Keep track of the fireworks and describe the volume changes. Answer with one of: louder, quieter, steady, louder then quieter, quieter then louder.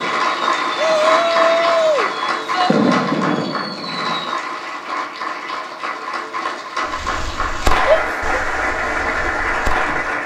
louder then quieter.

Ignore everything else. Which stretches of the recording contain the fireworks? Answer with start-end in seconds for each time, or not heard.
0.0-4.3, 6.9-10.1.